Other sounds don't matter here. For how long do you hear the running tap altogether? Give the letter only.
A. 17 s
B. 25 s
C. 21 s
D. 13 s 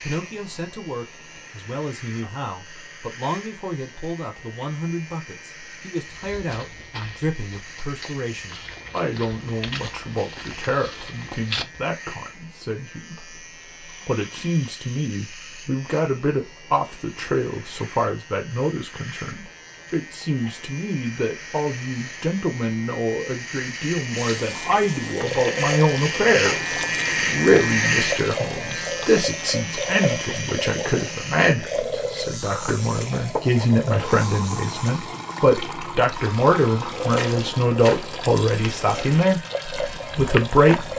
A.